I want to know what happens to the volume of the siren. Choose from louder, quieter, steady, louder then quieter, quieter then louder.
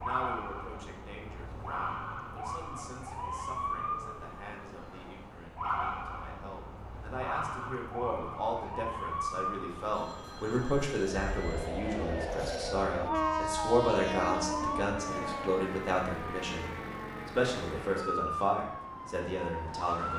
steady.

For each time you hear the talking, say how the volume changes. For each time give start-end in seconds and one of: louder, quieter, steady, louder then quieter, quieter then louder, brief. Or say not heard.
0.0-20.1 louder.